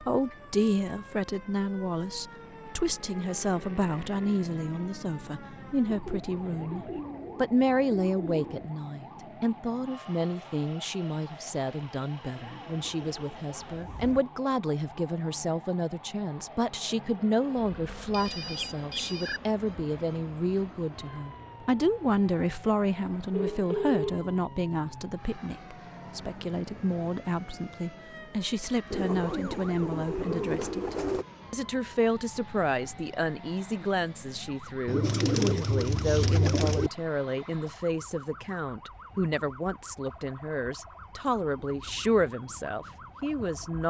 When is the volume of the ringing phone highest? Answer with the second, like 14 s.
24 s.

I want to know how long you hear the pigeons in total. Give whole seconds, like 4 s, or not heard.
9 s.